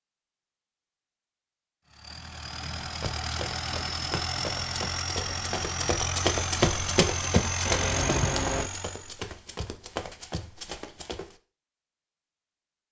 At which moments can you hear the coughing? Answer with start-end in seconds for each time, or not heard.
7.7-8.7.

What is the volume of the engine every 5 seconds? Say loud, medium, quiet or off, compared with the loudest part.
loud, loud, off.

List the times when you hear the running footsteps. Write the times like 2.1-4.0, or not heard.
2.8-11.3.